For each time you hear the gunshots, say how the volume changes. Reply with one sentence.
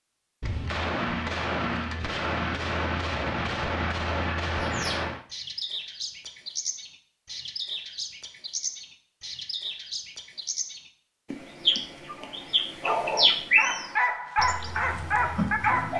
The gunshots can be heard from 0.4 to 5.2 s, at a steady volume.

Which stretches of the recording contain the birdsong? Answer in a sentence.
You can hear the birdsong from 4.6 to 15.9 s.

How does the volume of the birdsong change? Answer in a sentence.
The loudness of the birdsong goes up.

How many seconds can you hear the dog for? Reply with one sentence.
You can hear the dog for 4 seconds altogether.